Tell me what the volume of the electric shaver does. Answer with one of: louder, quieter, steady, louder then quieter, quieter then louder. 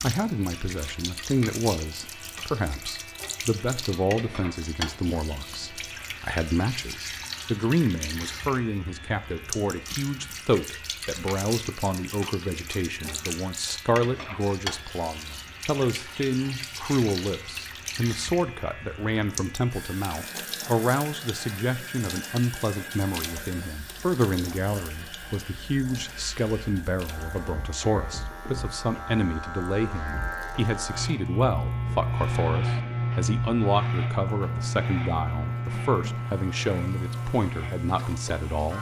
louder.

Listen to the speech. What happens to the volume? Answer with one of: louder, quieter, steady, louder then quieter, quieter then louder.
steady.